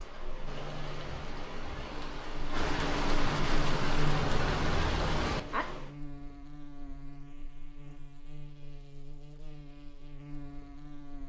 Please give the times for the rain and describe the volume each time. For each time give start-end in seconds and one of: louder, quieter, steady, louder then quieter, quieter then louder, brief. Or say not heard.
0.0-5.9 louder.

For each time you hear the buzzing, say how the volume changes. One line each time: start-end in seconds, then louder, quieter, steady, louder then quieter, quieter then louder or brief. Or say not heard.
0.0-11.2 louder then quieter.